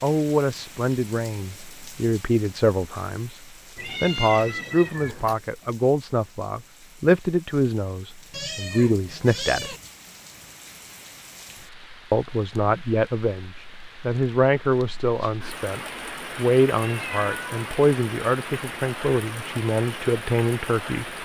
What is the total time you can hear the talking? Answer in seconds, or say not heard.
18 s.